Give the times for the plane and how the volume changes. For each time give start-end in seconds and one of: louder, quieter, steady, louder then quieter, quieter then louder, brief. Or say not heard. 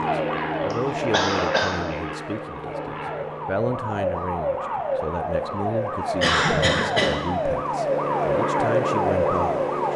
0.0-9.9 quieter then louder.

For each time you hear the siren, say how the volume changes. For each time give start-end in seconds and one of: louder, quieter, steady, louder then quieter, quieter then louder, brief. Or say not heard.
0.0-9.9 louder.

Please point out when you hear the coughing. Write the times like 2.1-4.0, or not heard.
0.7-1.9, 6.2-7.2.